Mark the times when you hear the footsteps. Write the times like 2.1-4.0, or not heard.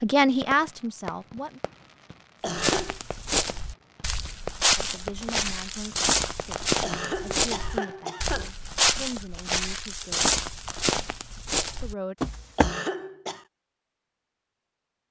2.5-12.8.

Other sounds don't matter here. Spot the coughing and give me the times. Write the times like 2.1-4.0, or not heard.
2.4-3.0, 6.8-8.5, 12.6-13.4.